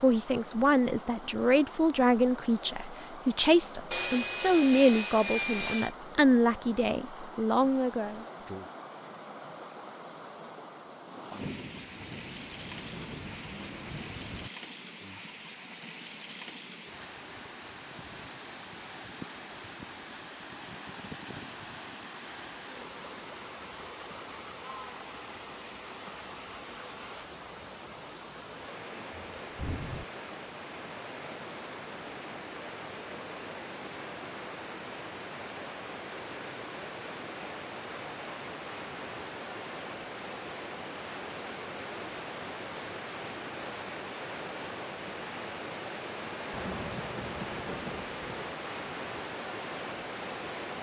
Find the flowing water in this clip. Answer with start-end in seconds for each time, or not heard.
0.0-50.7.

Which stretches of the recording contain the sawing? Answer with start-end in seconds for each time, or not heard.
3.9-6.0.